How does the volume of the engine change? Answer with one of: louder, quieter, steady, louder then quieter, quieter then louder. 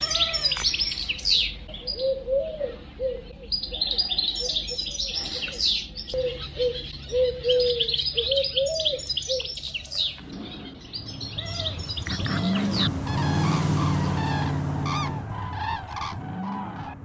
louder then quieter.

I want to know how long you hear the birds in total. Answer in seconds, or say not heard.
17 s.